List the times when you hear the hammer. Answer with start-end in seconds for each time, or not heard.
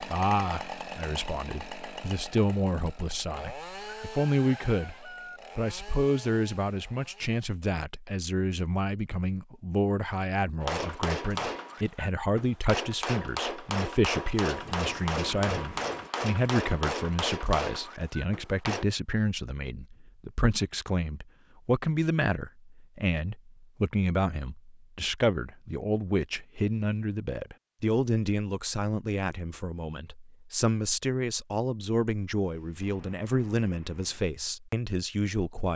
10.6-18.9.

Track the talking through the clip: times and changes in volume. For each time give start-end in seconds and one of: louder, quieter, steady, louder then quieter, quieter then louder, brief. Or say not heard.
0.0-35.7 steady.